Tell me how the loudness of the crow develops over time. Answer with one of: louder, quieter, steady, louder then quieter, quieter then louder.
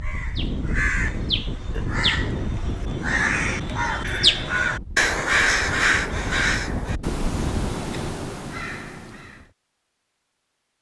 louder then quieter.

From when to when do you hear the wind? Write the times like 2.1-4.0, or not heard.
0.0-7.8.